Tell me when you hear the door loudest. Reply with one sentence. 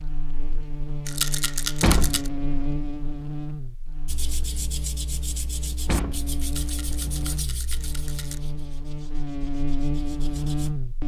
The volume of the door peaks at 2 seconds.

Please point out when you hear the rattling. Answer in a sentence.
You can hear the rattling from 1.1 to 2.3 s and from 6.4 to 8.4 s.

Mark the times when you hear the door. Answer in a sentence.
The door can be heard from 1.8 to 2.8 s and from 5.8 to 7.3 s.